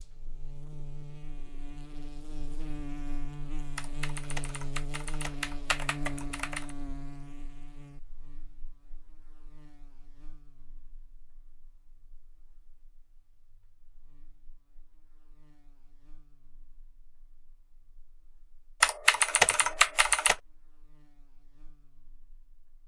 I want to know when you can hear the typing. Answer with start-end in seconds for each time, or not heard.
3.8-6.8, 18.8-20.4.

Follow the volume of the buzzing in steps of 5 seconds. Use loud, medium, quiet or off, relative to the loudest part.
loud, loud, quiet, quiet, quiet.